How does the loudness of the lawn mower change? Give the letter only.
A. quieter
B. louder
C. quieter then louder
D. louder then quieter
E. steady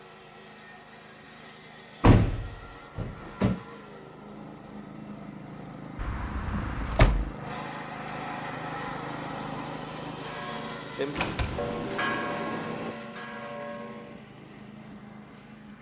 D.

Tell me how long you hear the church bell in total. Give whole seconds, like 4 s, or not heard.
4 s.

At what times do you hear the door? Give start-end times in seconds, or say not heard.
2.0-3.5, 6.0-7.3, 11.1-12.9.